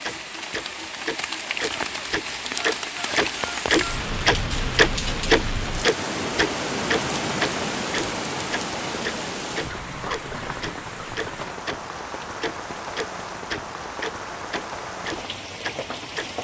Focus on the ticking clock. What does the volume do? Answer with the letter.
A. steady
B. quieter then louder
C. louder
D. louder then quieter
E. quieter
D.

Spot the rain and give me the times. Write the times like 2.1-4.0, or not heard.
0.0-16.3.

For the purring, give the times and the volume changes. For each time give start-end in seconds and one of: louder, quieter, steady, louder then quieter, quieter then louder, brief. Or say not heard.
not heard.